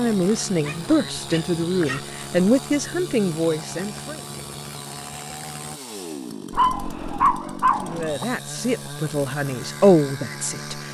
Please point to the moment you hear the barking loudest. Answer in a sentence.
The volume of the barking peaks at 7 seconds.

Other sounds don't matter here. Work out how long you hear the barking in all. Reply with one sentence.
You can hear the barking for 3 seconds altogether.